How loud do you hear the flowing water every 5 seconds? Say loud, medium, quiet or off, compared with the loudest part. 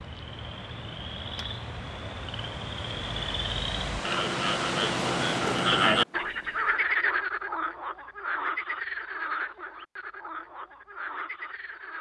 loud, loud, off.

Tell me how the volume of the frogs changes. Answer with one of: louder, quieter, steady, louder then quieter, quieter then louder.
louder then quieter.